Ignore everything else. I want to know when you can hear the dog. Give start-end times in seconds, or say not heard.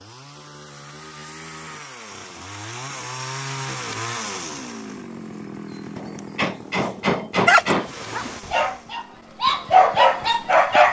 7.5-10.8.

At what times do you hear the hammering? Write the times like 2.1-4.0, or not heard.
6.0-7.9.